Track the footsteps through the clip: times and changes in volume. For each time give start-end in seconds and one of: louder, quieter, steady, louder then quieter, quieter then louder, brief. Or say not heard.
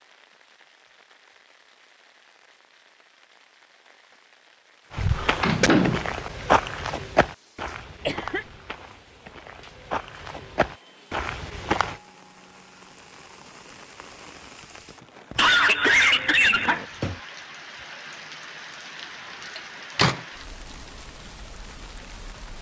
4.9-11.9 quieter then louder.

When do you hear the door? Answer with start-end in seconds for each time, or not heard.
5.4-6.2, 19.6-20.2.